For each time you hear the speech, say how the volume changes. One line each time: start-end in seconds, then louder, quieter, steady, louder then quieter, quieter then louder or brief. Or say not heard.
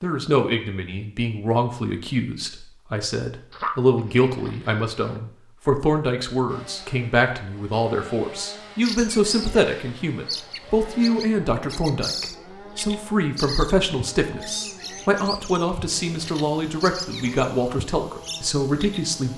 0.0-19.3 steady.